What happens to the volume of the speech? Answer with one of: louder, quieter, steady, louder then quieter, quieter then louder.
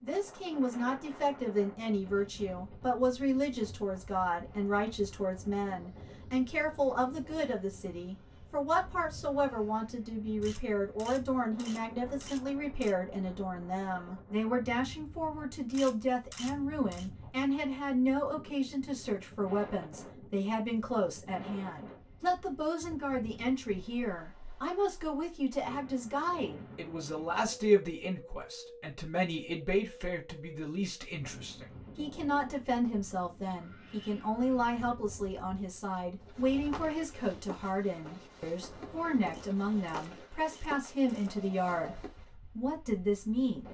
steady.